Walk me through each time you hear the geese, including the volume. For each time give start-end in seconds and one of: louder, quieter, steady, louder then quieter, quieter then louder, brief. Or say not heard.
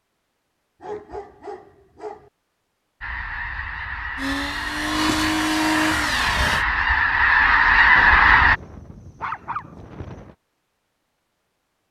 3.0-8.6 louder.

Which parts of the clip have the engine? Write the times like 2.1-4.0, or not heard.
4.2-6.7.